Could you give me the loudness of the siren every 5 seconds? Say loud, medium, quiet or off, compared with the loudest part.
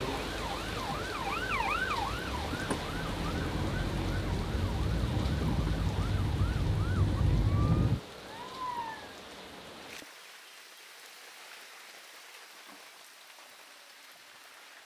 loud, loud, off.